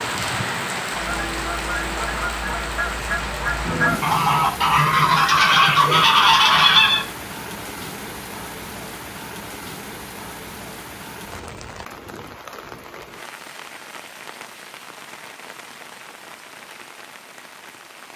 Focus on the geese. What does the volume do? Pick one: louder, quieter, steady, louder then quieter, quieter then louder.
louder.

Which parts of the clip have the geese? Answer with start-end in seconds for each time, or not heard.
0.9-7.0.